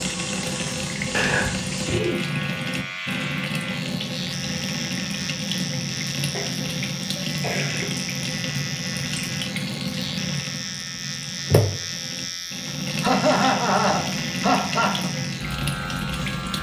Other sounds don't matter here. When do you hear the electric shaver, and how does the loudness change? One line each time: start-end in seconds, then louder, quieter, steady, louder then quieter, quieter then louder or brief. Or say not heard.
0.0-16.5 steady.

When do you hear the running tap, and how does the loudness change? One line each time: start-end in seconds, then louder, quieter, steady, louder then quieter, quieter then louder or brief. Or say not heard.
0.0-16.5 steady.